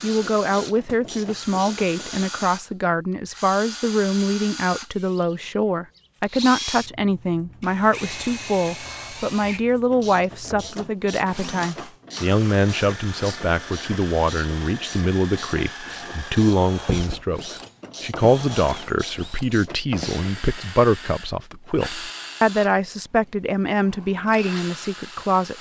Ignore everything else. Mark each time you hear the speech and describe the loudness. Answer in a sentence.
You can hear the speech from 0.0 to 25.5 s, at a steady volume.